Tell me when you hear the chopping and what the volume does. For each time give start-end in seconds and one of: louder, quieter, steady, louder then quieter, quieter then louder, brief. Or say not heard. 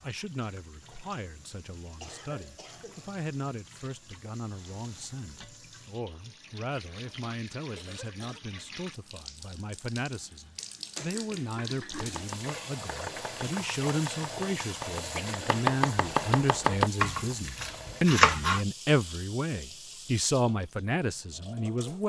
11.9-18.6 louder.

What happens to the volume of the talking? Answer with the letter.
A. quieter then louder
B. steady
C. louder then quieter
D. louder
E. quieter
D.